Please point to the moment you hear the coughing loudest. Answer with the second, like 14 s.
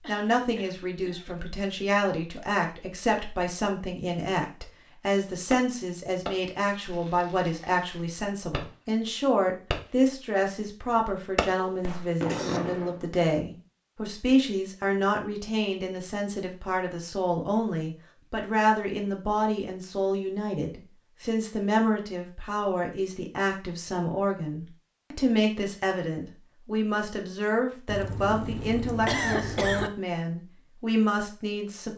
29 s.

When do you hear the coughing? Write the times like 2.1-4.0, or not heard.
0.0-1.4, 11.6-12.6, 27.9-29.9.